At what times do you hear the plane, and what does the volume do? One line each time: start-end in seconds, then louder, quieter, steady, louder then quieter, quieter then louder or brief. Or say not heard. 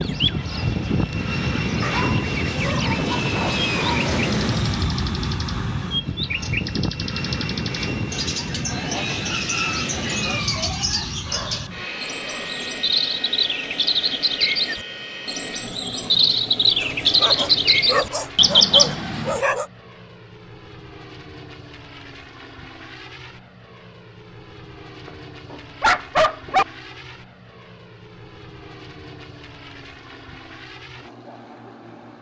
0.0-32.1 quieter.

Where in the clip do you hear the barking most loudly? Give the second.
26 s.